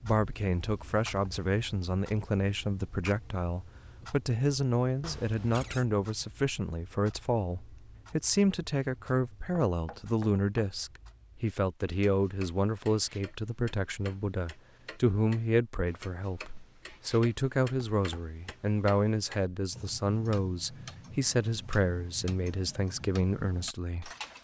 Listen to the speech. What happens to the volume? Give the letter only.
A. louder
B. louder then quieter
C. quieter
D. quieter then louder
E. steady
E.